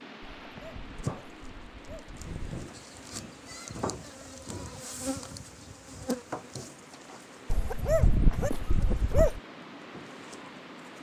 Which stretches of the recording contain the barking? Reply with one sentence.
You can hear the barking from 0.2 to 2.7 s and from 7.5 to 9.4 s.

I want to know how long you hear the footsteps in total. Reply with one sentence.
The footsteps can't be heard in this clip.